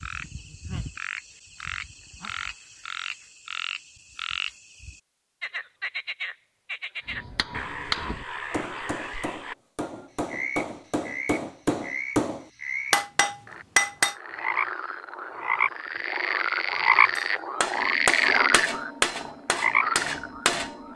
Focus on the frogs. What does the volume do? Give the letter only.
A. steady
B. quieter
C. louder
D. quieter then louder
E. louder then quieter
C.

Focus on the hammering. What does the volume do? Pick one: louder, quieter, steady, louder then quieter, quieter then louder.
louder then quieter.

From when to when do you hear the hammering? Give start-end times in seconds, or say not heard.
7.0-14.2, 17.1-20.9.